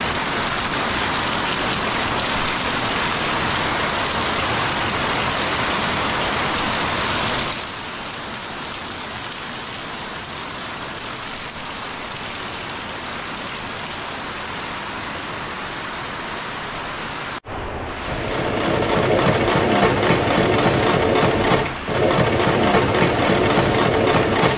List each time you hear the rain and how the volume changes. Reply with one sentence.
The rain can be heard from 0.0 to 24.5 s, getting quieter.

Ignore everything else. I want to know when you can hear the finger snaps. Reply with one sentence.
You can't hear the finger snaps here.